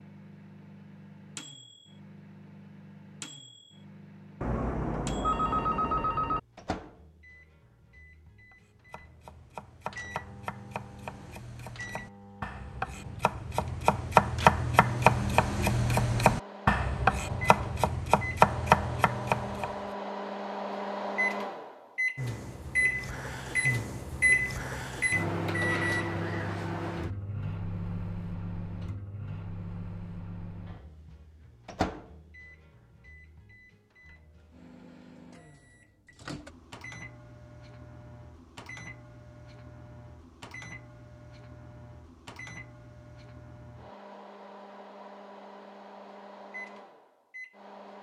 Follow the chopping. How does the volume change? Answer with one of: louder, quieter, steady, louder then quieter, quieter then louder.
louder.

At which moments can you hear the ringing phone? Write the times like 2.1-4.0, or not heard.
4.4-6.4.